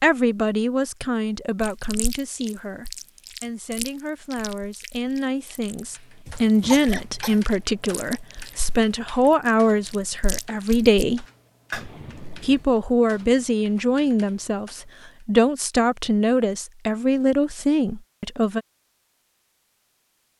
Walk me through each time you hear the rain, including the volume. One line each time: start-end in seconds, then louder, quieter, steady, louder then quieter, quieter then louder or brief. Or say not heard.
not heard.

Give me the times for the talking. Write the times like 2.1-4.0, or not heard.
0.0-11.2, 12.4-18.6.